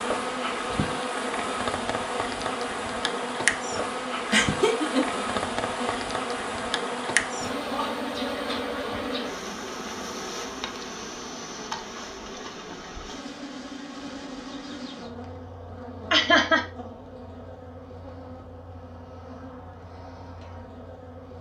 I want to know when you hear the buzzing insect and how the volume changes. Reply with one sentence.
The buzzing insect can be heard from 0.0 to 21.3 s, getting quieter.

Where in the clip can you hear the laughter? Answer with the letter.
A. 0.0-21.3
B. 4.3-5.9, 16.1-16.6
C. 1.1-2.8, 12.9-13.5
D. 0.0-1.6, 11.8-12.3
B.